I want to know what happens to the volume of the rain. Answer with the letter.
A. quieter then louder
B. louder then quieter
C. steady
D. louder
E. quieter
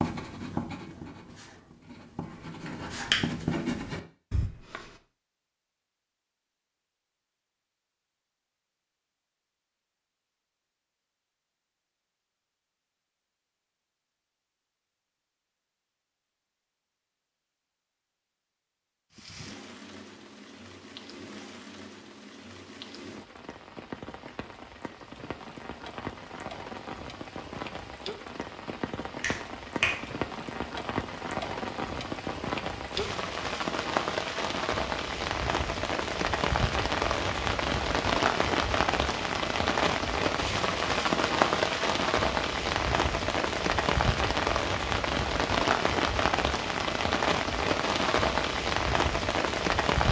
D.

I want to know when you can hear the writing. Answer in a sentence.
The writing can be heard from 0.0 to 5.0 s.